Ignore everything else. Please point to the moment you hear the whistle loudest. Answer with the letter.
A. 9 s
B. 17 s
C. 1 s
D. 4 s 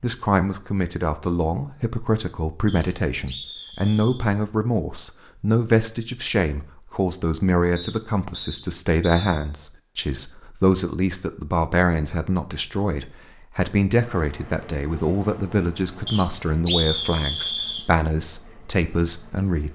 B.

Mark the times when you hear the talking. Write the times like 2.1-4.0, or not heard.
0.0-19.7.